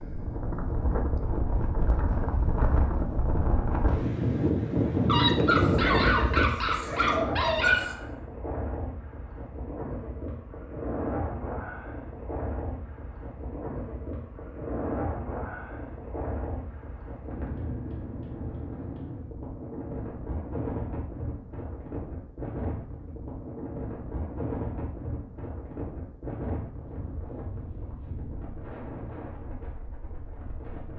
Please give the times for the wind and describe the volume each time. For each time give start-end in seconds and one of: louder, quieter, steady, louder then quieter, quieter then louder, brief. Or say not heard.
0.0-30.9 quieter.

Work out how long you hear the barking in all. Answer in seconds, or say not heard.
3 s.